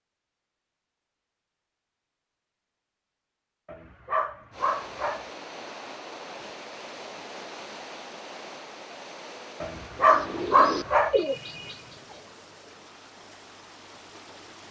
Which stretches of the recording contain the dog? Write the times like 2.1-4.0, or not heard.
3.6-5.2, 9.6-11.2.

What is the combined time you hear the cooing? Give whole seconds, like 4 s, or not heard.
2 s.